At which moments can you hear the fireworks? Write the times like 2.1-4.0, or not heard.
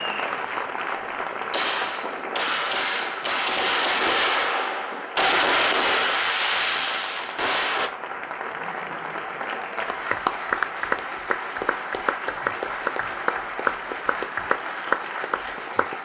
1.5-7.9.